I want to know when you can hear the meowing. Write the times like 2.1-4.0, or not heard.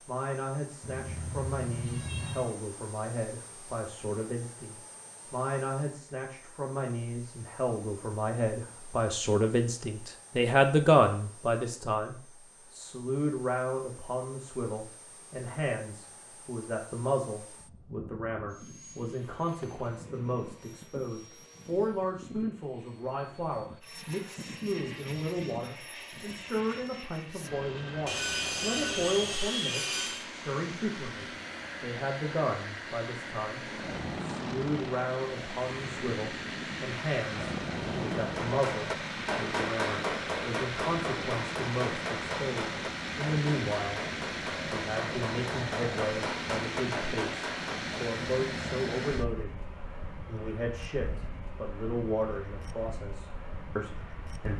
0.8-2.5.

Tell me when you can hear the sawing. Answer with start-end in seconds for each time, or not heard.
28.1-30.2.